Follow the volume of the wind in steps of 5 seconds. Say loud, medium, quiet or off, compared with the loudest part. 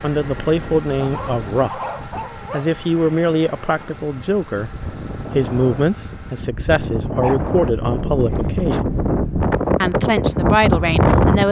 quiet, medium, loud.